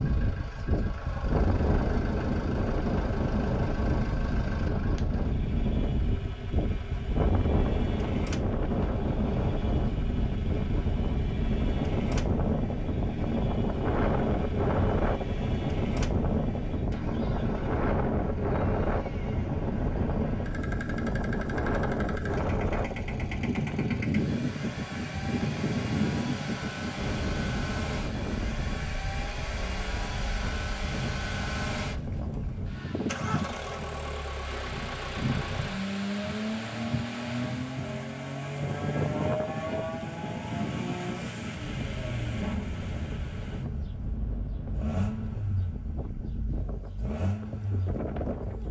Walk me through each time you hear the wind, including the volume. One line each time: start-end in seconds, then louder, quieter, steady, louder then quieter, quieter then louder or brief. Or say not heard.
0.0-48.6 quieter.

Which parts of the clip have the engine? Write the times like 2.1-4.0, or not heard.
0.0-48.6.